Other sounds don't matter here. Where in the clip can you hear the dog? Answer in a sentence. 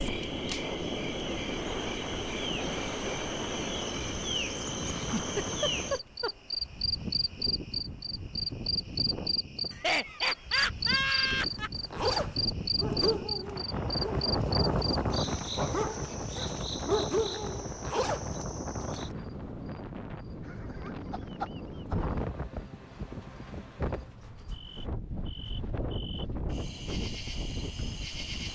You can hear the dog from 12.8 to 17.6 s.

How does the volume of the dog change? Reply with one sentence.
The loudness of the dog goes down, then up.